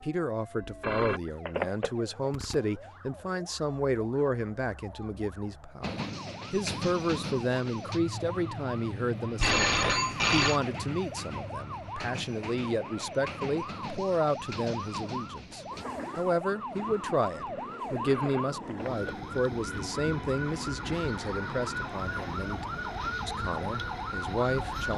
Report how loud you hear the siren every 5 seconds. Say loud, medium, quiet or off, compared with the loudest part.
quiet, medium, medium, loud, loud.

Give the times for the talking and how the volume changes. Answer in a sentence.
You can hear the talking from 0.0 to 24.9 s, at a steady volume.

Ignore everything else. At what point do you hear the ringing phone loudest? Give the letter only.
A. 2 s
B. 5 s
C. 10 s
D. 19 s
C.